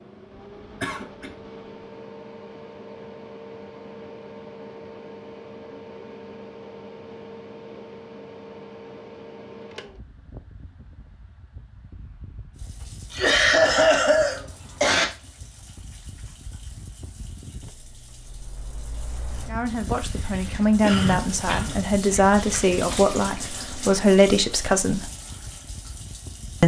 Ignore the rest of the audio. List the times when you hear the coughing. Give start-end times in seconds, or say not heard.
0.8-1.3, 13.1-15.1, 20.0-21.8.